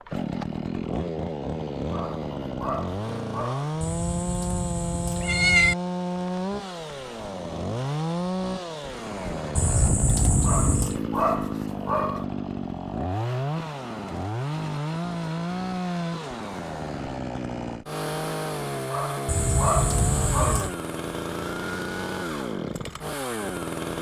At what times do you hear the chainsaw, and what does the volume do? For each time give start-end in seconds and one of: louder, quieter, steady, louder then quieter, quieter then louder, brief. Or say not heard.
0.0-23.9 steady.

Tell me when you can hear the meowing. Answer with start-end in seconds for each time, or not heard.
3.8-5.8, 9.6-11.0, 19.2-20.8.